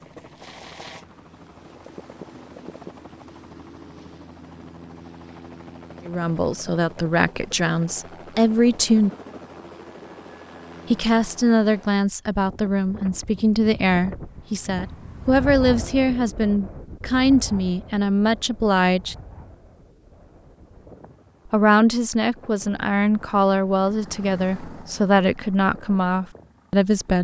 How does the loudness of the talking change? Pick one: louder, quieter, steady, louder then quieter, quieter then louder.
steady.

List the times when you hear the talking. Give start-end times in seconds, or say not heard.
6.0-9.1, 10.9-19.1, 21.5-27.1.